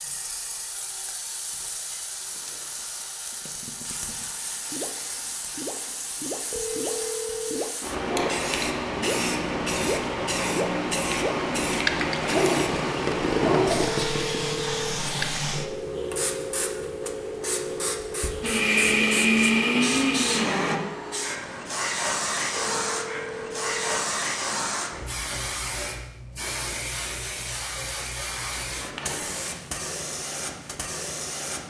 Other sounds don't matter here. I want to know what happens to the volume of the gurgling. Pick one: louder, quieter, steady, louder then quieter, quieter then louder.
louder.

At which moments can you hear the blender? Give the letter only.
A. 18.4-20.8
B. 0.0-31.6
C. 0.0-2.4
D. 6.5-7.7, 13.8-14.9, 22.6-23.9
A.